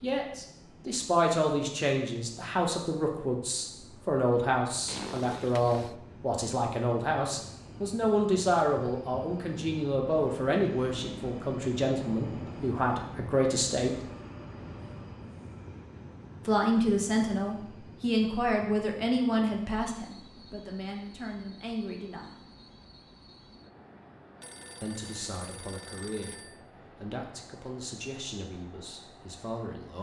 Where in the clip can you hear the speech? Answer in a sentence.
You can hear the speech from 0.0 to 14.0 s, from 16.4 to 22.4 s and from 24.8 to 29.9 s.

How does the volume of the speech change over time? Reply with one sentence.
The loudness of the speech goes down.